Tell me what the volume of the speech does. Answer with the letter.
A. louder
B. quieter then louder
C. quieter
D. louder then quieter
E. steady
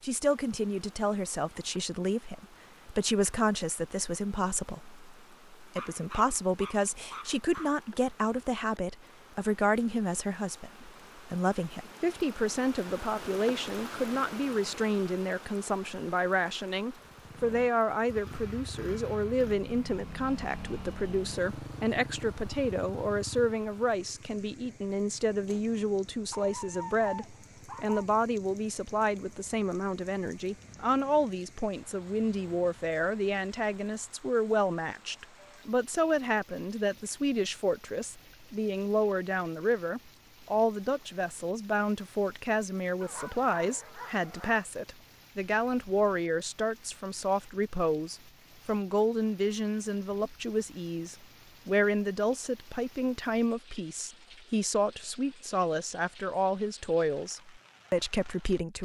E.